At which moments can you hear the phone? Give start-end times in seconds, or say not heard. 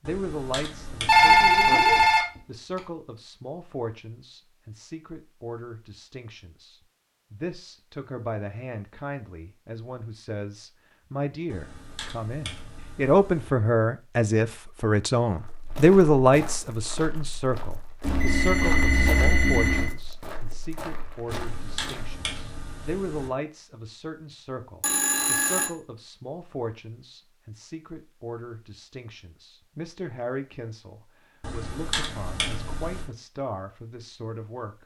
1.1-2.8, 18.0-19.9, 24.8-25.7.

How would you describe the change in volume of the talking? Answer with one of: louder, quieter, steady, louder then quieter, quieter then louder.
louder then quieter.